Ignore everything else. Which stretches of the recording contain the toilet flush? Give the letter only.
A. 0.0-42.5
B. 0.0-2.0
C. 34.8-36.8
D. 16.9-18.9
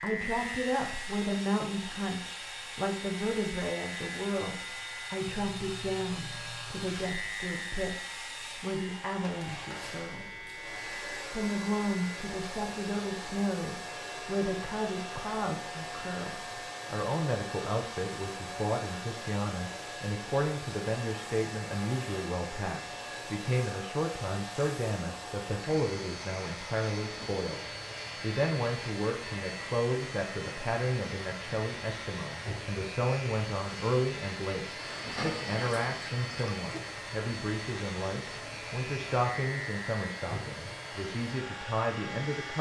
C.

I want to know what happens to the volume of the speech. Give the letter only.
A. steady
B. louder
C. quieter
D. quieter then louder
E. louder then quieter
A.